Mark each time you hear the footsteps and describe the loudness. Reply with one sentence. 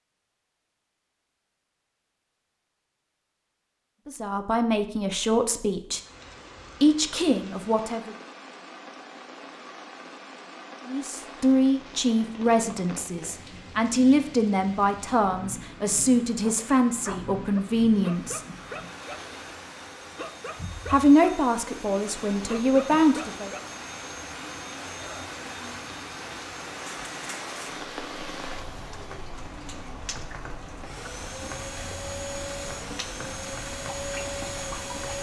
The footsteps can't be heard in this clip.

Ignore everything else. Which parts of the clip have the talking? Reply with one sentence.
You can hear the talking from 4.0 to 6.0 s, from 6.8 to 8.2 s, from 10.8 to 18.4 s and from 20.9 to 23.5 s.